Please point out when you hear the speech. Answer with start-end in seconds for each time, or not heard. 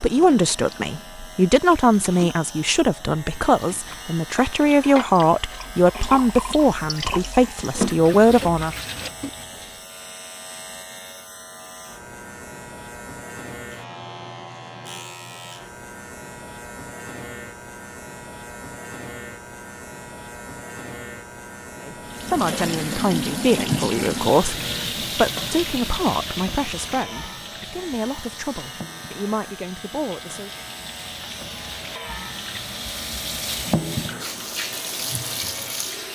0.0-8.8, 21.8-30.5.